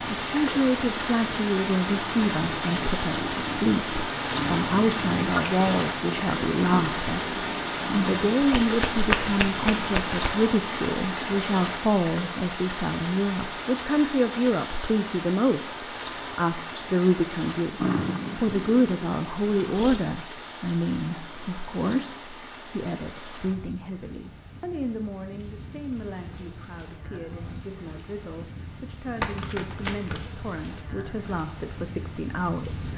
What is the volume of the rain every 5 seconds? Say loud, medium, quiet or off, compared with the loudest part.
loud, loud, loud, medium, quiet, quiet, medium.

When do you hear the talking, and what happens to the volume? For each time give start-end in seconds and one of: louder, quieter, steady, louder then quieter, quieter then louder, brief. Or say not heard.
0.1-32.9 quieter.